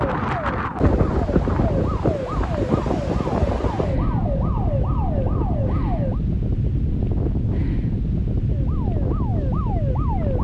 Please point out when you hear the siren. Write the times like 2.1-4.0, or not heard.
0.0-6.2, 8.4-10.3.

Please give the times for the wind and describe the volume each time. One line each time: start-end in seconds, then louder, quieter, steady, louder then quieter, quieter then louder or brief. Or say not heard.
0.0-10.3 steady.